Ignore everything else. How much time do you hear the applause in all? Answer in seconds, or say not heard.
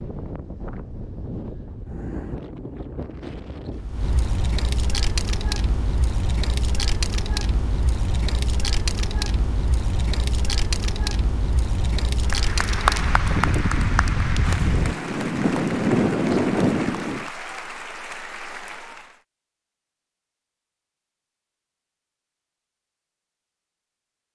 7 s.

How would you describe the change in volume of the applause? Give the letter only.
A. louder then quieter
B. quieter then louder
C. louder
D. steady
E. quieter
E.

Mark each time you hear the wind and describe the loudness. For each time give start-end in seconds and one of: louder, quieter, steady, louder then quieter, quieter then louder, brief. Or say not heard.
0.0-17.3 louder.